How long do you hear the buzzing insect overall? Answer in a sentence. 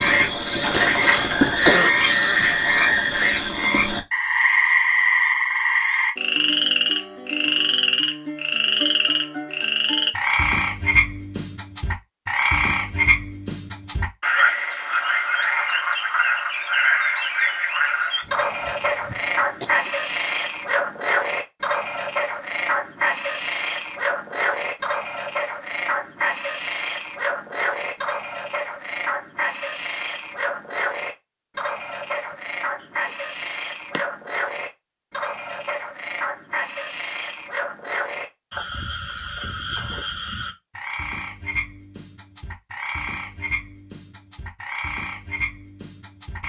The buzzing insect can't be heard in this clip.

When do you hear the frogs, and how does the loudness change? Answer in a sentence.
The frogs can be heard from 0.0 to 46.4 s, getting quieter.